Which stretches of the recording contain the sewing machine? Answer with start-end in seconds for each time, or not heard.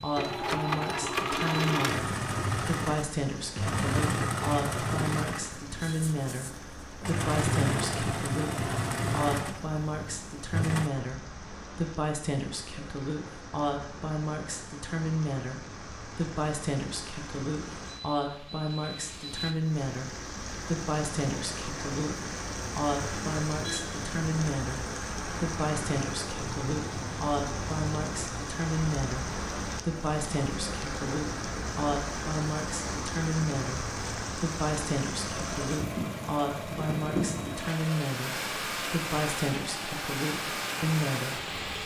0.0-10.9, 35.3-41.8.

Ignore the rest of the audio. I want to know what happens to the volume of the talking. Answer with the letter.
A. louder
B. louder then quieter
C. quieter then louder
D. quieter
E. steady
E.